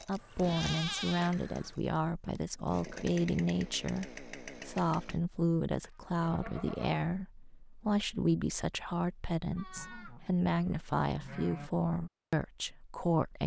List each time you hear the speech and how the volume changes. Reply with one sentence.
You can hear the speech from 0.1 to 13.4 s, at a steady volume.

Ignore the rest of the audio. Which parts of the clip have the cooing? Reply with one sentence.
You can't hear the cooing here.